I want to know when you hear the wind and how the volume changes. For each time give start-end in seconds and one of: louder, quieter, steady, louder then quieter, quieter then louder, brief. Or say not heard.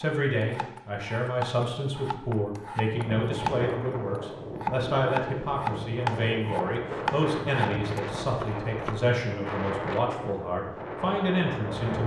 2.9-12.0 steady.